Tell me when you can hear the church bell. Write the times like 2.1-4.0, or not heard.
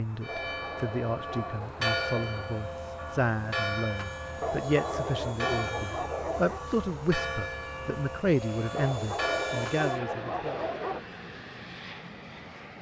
0.2-10.2.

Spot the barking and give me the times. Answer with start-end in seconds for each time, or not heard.
0.2-2.5, 4.4-6.7, 8.8-11.0.